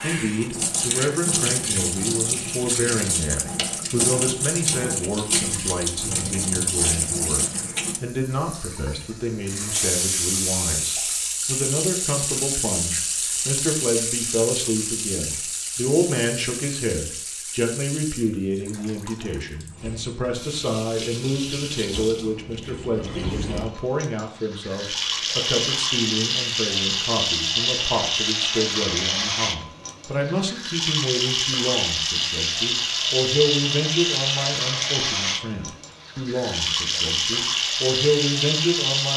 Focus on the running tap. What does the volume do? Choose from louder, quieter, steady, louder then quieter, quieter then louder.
quieter then louder.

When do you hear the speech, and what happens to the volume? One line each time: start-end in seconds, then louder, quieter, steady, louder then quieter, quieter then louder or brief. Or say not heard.
0.0-39.1 steady.